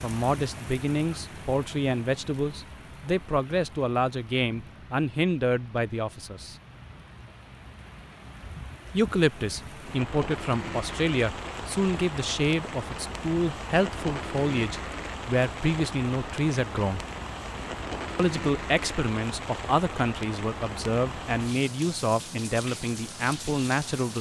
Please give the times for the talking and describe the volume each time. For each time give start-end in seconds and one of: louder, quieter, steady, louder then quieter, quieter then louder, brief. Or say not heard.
0.0-6.5 steady
8.9-17.0 steady
18.1-24.1 steady.